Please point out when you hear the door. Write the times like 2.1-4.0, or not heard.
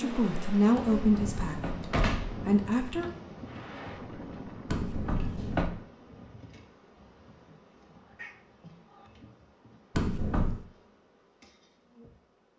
0.8-2.5, 4.7-5.8, 9.9-10.7.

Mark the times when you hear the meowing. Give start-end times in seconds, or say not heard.
8.0-9.1.